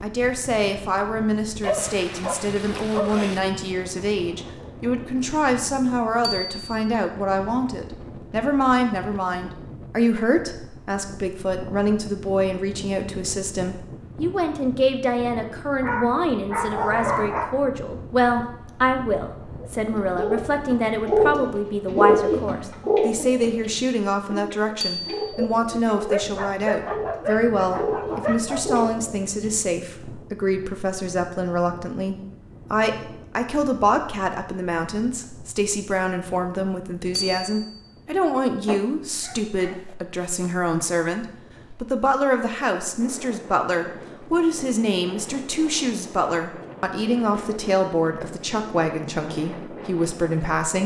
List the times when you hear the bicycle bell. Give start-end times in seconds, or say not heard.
6.2-6.9, 24.8-25.4, 37.1-37.8.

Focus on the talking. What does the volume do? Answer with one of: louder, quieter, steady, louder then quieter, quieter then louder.
steady.